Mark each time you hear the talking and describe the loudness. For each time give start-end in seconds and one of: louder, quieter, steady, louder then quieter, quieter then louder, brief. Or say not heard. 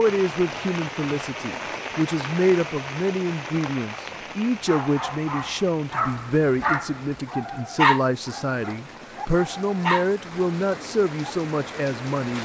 0.0-12.3 steady.